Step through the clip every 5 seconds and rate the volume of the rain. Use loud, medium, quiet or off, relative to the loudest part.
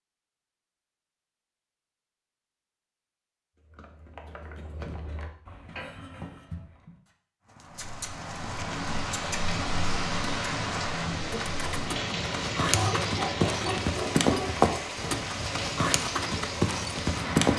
off, loud, loud, loud.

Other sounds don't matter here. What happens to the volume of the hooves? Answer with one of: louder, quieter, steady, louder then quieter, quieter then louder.
louder.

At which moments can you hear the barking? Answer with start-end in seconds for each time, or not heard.
12.7-14.7.